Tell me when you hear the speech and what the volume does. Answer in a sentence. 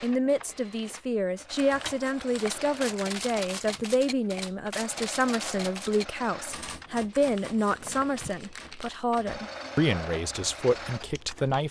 You can hear the speech from 0.0 to 11.6 s, at a steady volume.